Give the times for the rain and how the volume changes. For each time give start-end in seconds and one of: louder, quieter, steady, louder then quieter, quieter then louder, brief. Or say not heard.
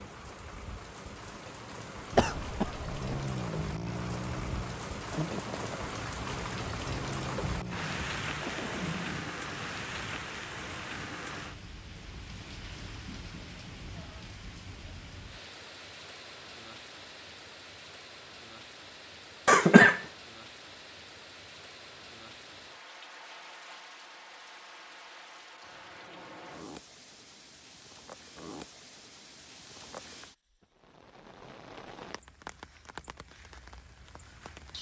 0.0-34.7 quieter.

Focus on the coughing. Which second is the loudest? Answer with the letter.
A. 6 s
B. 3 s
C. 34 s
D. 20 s
D.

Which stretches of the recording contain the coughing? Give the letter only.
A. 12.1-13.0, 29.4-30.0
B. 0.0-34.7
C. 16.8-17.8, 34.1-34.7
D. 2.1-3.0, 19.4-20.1
D.